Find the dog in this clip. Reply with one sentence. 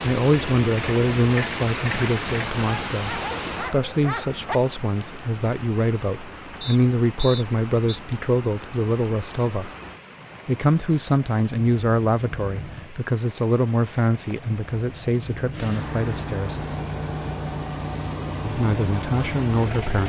The dog can be heard from 2.5 to 4.6 s.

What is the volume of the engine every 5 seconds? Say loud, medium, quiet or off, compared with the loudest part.
loud, off, off, loud.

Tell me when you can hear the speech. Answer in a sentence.
The speech can be heard from 0.0 to 9.7 s, from 10.4 to 16.6 s and from 18.4 to 20.0 s.